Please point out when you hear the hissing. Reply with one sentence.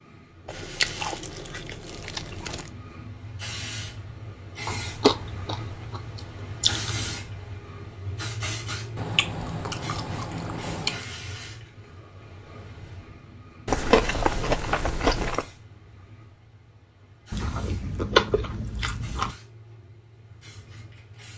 You can hear the hissing from 0.0 to 21.3 s.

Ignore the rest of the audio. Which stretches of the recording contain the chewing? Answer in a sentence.
You can hear the chewing from 0.5 to 2.7 s, from 4.7 to 6.9 s, from 8.9 to 11.1 s, from 13.7 to 15.4 s and from 17.3 to 19.4 s.